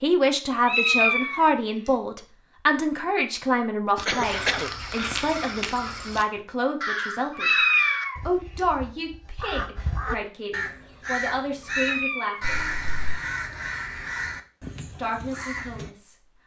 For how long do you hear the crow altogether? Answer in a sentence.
The crow can be heard for 12 seconds in total.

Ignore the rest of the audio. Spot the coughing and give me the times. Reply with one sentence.
The coughing can be heard from 4.0 to 4.7 s and from 12.4 to 13.2 s.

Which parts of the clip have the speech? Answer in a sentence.
You can hear the speech from 0.0 to 7.5 s, from 8.2 to 12.7 s and from 14.9 to 16.1 s.